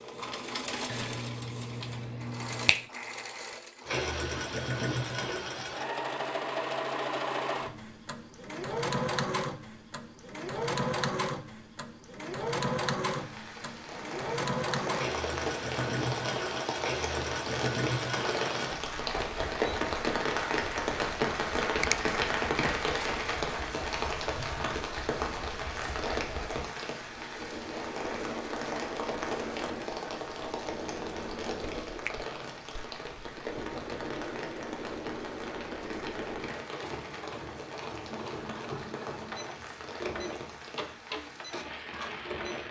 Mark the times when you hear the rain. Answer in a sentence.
You can hear the rain from 13.1 to 42.6 s.